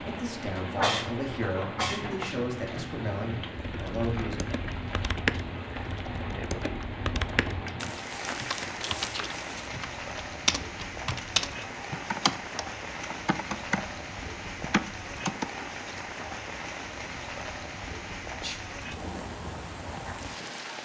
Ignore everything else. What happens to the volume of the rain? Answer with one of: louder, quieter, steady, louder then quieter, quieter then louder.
steady.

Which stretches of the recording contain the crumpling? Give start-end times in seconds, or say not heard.
7.8-9.7.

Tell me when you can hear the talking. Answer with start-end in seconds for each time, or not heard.
0.0-4.6.